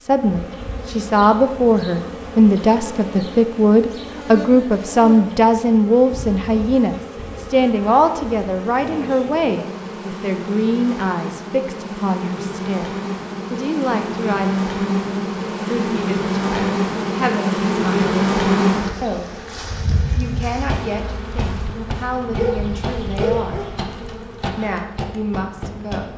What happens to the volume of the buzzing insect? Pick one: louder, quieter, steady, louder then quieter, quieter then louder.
louder then quieter.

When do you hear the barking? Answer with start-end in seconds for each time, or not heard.
22.4-23.8.